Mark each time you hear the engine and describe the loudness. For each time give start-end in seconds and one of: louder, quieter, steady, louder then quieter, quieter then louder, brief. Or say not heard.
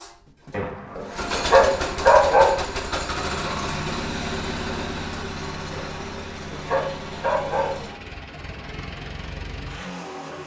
0.0-10.4 quieter.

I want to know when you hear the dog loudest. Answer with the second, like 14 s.
2 s.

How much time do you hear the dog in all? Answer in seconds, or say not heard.
4 s.